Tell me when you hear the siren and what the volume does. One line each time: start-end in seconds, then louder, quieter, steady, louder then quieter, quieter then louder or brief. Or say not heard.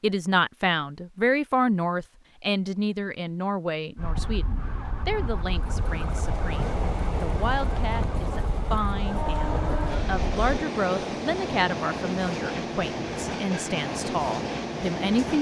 4.0-10.4 steady.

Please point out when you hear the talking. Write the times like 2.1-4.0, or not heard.
0.0-15.3.